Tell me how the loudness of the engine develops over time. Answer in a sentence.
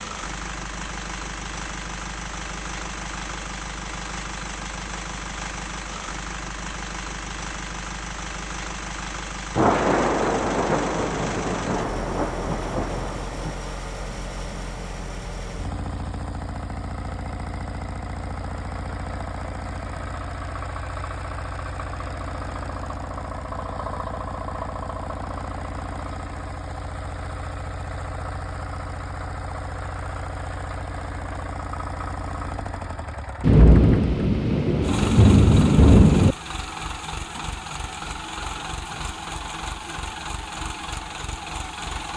The volume of the engine stays about the same.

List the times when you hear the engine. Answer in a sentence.
The engine can be heard from 0.0 to 42.1 s.